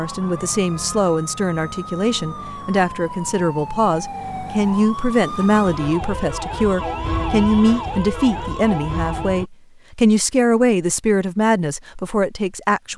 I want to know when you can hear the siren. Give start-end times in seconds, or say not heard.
0.0-9.5.